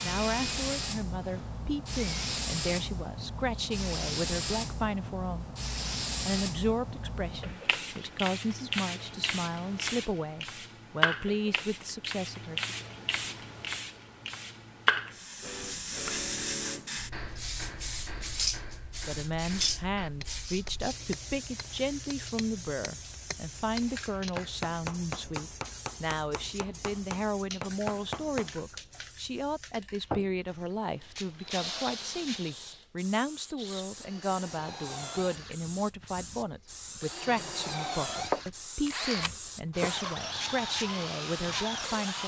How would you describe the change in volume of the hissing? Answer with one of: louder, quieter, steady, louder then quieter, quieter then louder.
quieter.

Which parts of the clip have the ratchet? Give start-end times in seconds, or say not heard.
not heard.